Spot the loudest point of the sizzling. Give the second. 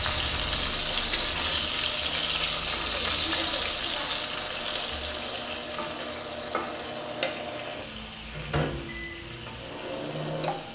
3 s.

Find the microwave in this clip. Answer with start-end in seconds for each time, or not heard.
0.0-10.6.